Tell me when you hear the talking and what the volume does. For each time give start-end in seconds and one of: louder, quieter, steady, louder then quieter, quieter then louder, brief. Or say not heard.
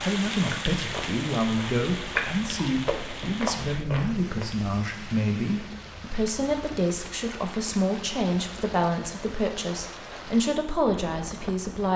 0.0-11.9 steady.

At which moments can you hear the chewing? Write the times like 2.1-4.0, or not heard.
0.2-4.5.